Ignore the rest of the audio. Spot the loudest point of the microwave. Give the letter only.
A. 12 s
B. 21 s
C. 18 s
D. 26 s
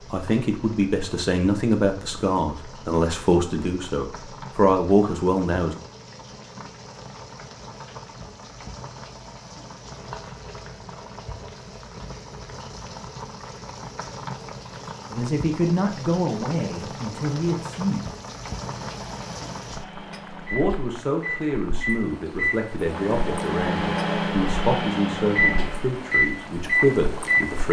D.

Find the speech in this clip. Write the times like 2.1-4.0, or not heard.
0.1-5.8, 15.1-18.1, 20.5-27.6.